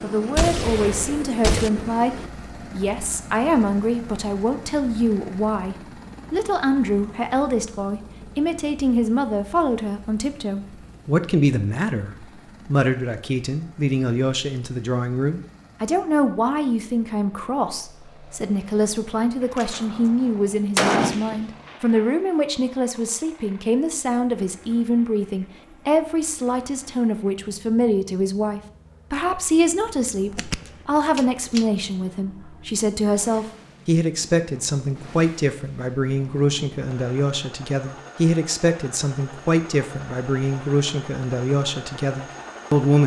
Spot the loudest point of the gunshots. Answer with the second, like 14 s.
21 s.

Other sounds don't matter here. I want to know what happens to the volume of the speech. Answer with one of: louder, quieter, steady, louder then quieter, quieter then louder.
steady.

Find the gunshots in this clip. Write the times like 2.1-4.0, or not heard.
0.3-1.7, 19.4-22.1, 30.4-31.6.